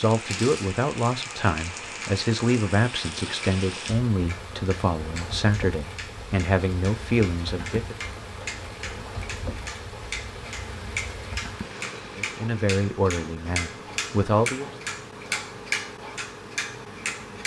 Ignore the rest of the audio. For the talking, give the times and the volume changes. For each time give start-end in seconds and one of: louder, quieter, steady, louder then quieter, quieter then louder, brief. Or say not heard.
0.0-8.0 steady
12.2-14.7 brief.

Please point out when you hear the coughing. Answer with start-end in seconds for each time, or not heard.
not heard.